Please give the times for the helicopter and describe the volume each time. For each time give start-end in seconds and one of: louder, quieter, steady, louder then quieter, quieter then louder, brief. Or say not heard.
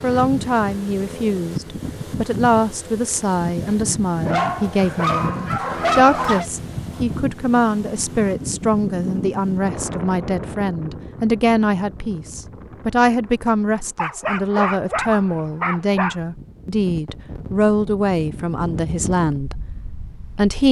not heard.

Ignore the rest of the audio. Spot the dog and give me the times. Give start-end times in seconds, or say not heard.
4.2-6.5, 13.9-16.1.